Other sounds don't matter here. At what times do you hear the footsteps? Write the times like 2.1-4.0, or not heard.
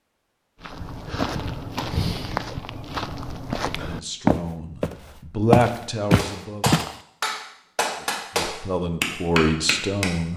0.6-7.0.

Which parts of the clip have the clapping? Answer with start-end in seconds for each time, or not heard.
6.2-10.3.